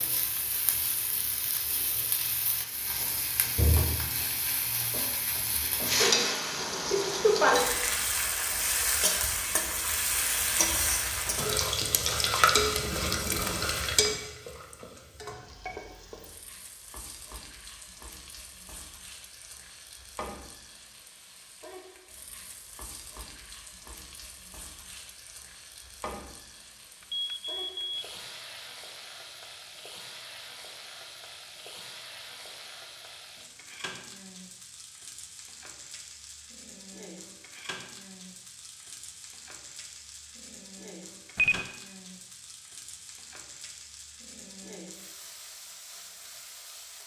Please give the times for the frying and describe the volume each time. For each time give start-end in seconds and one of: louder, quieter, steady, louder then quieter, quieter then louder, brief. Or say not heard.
0.0-47.0 quieter.